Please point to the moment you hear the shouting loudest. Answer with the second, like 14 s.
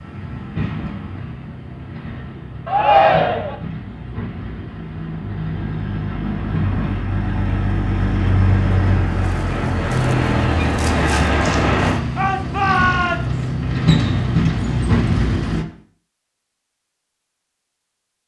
3 s.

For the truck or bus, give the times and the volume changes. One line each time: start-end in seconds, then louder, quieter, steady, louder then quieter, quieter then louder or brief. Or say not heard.
0.0-15.7 louder.